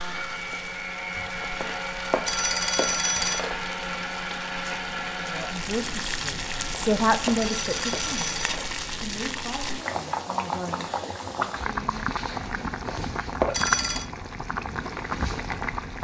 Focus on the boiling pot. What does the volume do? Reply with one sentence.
The volume of the boiling pot goes up.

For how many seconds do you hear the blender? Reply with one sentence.
You can hear the blender for 9 seconds altogether.